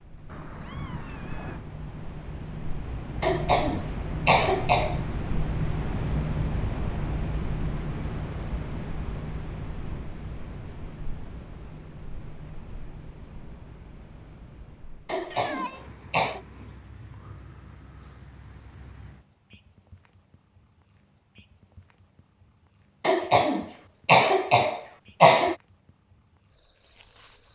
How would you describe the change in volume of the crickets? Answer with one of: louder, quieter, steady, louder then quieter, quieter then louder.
quieter.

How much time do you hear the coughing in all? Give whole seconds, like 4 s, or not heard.
6 s.